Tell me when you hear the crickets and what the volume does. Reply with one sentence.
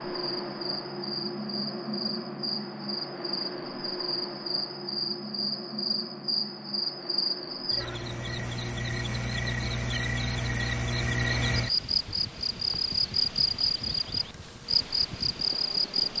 You can hear the crickets from 0.0 to 16.1 s, getting louder.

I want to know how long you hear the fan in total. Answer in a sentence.
The fan can be heard for 16 seconds in total.